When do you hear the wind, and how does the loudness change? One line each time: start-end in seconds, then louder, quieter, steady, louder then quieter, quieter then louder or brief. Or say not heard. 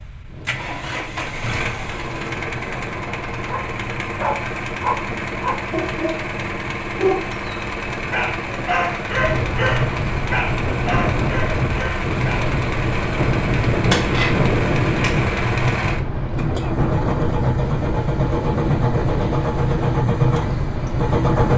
0.0-21.5 louder.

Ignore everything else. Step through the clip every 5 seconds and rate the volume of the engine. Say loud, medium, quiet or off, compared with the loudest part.
medium, medium, medium, loud, loud.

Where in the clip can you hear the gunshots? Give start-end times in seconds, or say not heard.
13.2-15.2.